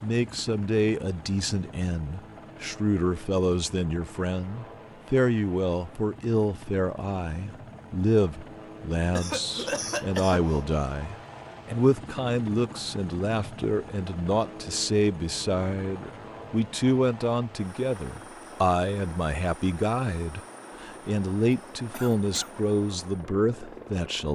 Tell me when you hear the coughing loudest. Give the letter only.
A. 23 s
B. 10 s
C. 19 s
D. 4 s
B.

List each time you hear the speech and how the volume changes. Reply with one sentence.
The speech can be heard from 0.0 to 24.2 s, at a steady volume.